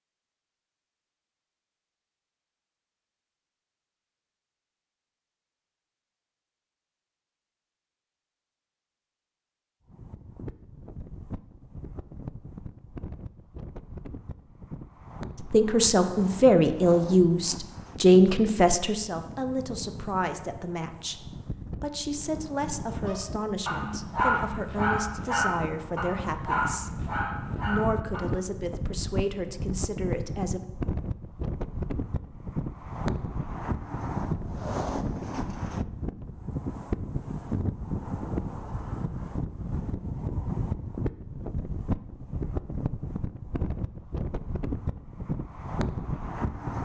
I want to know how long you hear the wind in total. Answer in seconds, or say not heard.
37 s.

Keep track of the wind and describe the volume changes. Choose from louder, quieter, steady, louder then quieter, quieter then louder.
louder.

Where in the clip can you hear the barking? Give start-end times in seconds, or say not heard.
23.0-28.5.